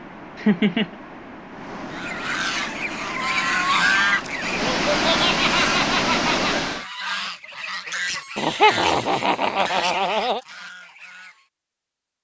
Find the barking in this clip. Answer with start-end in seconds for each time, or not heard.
not heard.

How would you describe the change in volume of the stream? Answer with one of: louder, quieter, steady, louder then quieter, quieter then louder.
louder.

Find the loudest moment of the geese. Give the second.
4 s.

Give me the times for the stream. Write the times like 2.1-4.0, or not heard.
0.0-6.8.